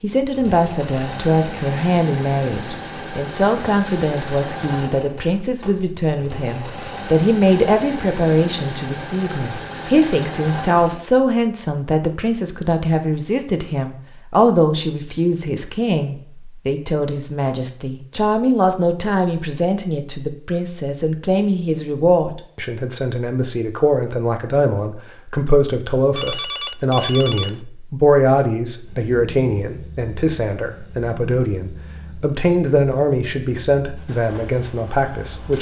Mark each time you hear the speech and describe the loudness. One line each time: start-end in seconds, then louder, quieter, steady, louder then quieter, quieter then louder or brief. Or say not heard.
0.0-35.5 steady.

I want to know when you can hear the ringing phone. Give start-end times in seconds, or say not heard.
26.1-27.6.